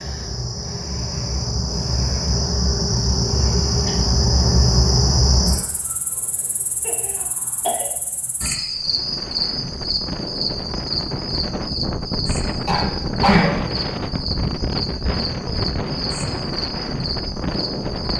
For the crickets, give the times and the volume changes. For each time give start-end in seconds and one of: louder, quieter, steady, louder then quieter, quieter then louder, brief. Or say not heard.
0.0-18.1 quieter.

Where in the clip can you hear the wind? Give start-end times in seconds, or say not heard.
8.7-18.1.